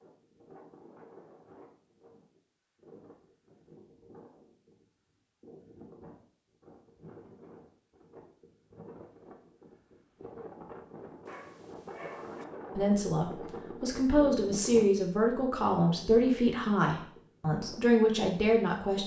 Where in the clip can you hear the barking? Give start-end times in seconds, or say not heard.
11.2-12.4.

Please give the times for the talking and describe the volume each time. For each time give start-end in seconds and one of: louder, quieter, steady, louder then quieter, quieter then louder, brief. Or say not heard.
12.8-19.0 steady.